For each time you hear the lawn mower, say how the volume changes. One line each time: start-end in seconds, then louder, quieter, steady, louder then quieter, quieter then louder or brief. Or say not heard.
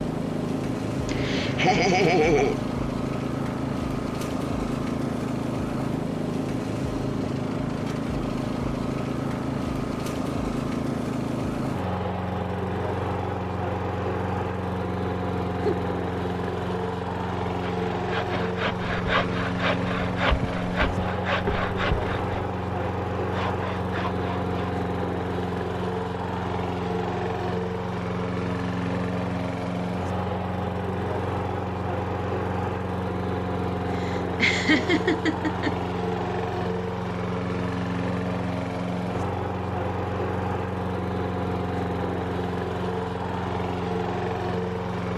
0.0-45.1 steady.